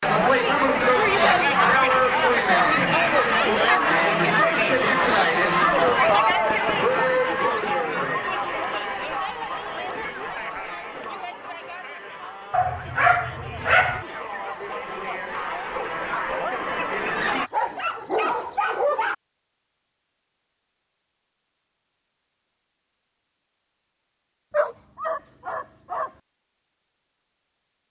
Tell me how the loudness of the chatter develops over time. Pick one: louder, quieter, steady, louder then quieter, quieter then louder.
quieter then louder.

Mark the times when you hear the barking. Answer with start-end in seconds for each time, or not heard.
1.1-2.6, 5.8-7.7, 12.5-14.1, 17.1-19.1, 24.5-26.1.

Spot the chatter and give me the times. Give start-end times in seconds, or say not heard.
0.0-17.5.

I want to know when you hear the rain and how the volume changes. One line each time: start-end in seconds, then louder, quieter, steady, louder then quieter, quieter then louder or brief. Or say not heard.
not heard.